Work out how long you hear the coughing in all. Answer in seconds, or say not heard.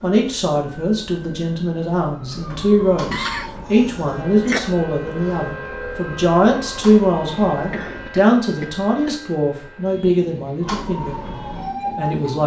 3 s.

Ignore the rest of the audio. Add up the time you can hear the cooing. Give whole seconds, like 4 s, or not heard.
not heard.